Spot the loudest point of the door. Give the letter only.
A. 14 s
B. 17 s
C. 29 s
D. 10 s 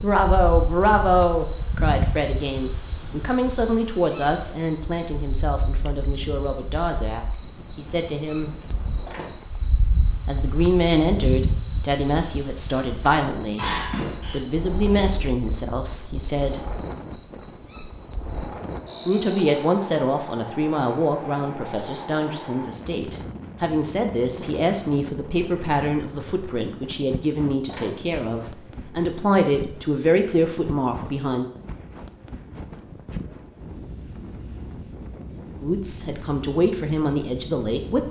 A.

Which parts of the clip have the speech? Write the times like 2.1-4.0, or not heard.
0.0-8.6, 10.2-13.7, 14.3-16.6, 19.1-31.4, 35.6-38.0.